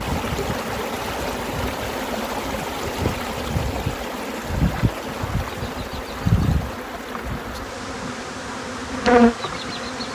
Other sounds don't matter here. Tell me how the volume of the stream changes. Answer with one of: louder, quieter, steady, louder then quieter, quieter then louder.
quieter.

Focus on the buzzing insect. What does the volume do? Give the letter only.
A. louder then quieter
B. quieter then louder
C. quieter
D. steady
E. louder
E.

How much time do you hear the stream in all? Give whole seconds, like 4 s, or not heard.
10 s.